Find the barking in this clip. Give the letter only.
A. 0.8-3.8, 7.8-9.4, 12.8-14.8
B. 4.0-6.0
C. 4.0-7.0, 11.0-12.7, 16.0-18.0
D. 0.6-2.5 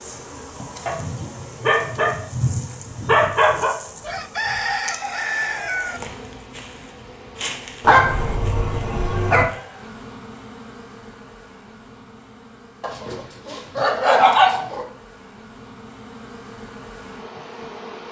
A.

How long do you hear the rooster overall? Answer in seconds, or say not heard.
2 s.